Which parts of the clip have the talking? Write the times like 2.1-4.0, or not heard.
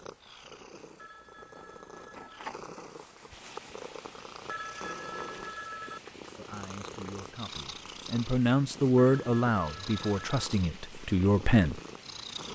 6.3-11.8.